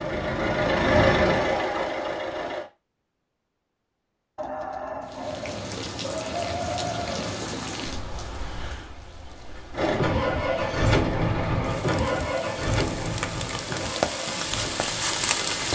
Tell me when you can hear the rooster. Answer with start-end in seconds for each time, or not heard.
4.3-7.4.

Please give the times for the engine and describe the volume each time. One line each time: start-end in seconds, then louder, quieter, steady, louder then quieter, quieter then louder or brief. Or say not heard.
0.0-2.6 brief
9.7-15.6 quieter.